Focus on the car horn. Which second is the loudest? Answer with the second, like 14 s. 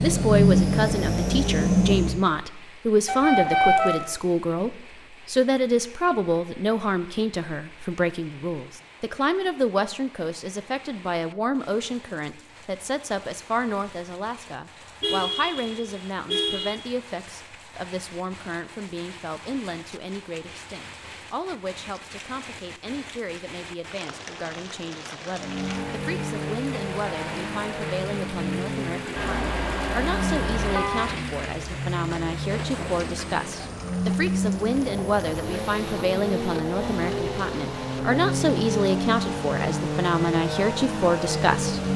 4 s.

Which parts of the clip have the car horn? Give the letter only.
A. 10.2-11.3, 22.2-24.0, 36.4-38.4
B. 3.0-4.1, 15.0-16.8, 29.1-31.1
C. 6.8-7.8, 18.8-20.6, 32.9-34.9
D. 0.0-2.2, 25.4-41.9
B.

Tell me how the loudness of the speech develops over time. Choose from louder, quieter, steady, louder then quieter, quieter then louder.
quieter then louder.